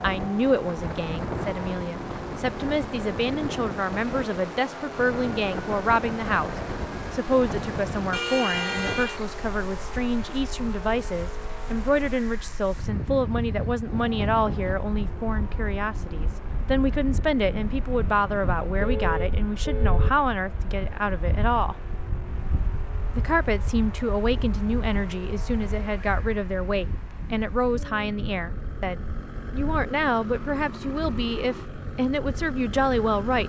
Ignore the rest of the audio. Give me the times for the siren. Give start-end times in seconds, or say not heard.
not heard.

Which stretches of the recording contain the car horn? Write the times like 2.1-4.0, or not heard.
8.1-9.2, 18.8-20.1.